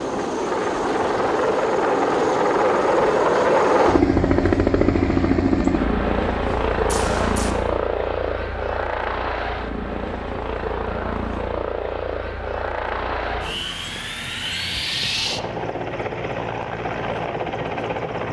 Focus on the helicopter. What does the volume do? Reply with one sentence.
The volume of the helicopter goes down.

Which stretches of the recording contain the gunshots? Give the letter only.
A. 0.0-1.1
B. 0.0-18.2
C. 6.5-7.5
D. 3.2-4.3
C.